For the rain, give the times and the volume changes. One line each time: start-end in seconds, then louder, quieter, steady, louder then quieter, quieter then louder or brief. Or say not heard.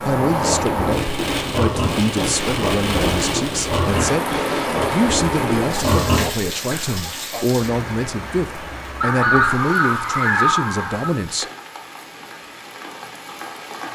0.0-13.9 quieter.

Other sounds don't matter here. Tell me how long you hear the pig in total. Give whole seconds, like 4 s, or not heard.
7 s.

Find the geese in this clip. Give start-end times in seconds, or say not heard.
9.0-11.2.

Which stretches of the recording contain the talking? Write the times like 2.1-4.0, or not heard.
0.0-4.3, 4.9-11.4.